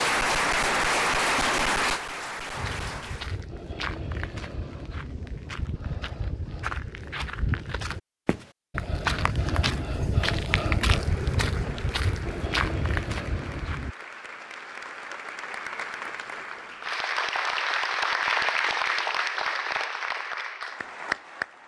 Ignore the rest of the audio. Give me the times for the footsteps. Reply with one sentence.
You can hear the footsteps from 2.5 to 13.9 s.